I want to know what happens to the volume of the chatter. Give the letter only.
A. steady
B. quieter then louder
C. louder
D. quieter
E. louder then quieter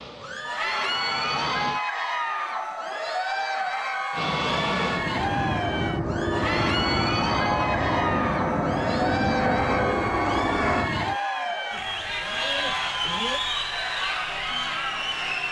A.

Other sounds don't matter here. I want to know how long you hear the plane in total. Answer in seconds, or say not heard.
9 s.